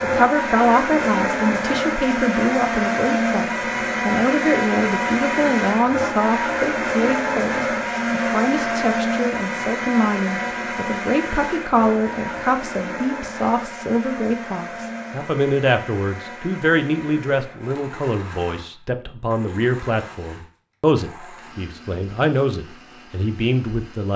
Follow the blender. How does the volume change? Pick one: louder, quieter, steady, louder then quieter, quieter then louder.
quieter.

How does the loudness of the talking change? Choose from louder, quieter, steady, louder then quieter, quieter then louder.
steady.